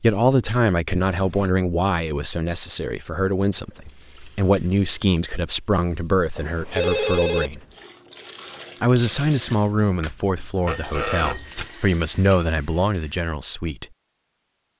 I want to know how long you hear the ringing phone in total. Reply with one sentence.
You can hear the ringing phone for 3 seconds altogether.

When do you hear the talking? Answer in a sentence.
You can hear the talking from 0.0 to 7.6 s and from 8.8 to 13.8 s.